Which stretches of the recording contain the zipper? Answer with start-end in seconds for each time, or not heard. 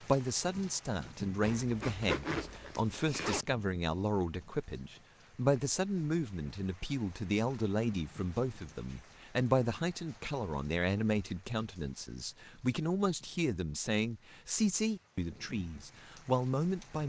1.4-3.5.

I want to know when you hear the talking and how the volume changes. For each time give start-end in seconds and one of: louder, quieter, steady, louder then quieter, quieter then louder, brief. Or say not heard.
0.0-17.0 steady.